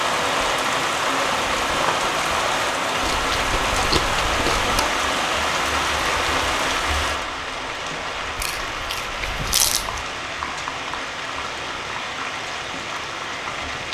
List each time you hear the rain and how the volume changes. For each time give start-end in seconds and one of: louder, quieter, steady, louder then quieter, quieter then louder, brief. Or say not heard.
0.0-13.9 quieter.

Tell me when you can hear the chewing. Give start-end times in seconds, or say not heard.
3.0-5.0, 8.3-10.1.